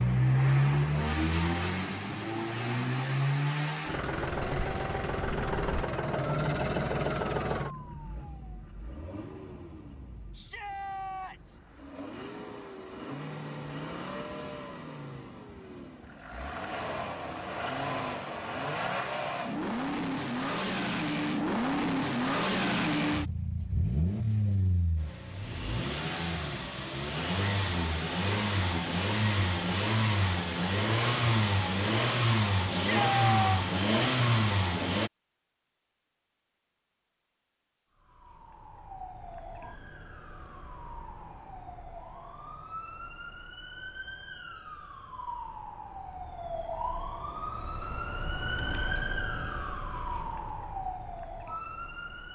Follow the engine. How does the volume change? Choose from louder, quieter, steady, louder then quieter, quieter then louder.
quieter then louder.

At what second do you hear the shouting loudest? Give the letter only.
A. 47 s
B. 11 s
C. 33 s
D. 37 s
C.